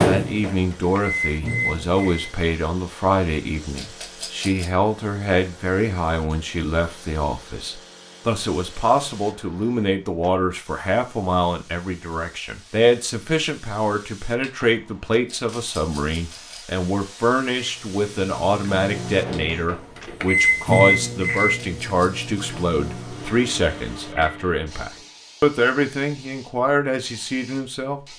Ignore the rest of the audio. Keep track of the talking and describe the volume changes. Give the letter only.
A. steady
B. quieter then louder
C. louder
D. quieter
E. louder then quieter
A.